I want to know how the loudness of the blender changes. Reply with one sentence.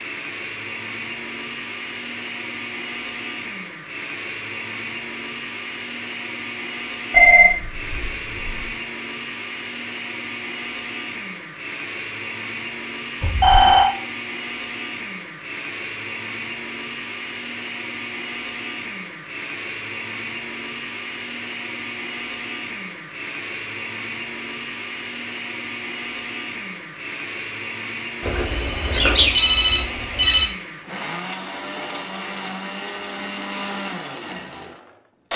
The volume of the blender stays about the same.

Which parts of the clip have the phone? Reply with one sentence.
The phone can be heard from 7.1 to 8.7 s, from 13.2 to 13.8 s and from 28.2 to 30.5 s.